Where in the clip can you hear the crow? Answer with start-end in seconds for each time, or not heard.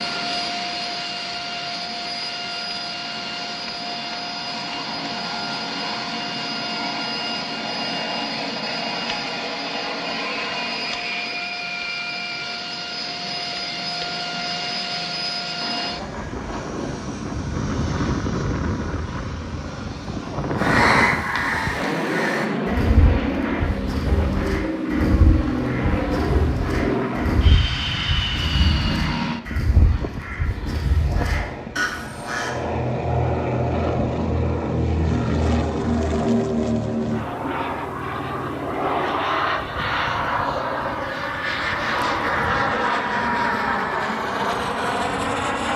20.6-32.5.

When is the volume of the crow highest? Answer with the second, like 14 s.
21 s.